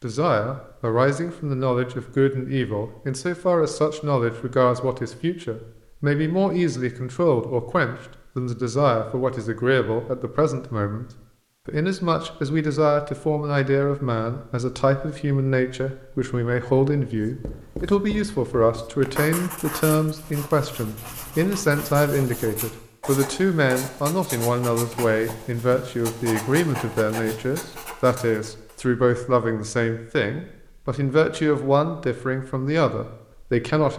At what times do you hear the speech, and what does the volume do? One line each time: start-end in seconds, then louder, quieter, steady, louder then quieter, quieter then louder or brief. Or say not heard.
0.0-11.1 steady
11.7-33.9 steady.